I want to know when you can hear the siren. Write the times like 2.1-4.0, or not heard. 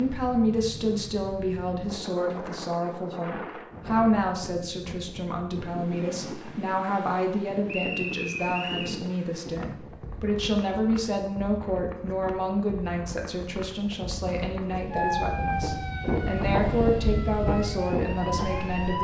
14.9-18.9.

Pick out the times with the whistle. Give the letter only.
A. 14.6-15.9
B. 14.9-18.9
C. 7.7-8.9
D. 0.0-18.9
C.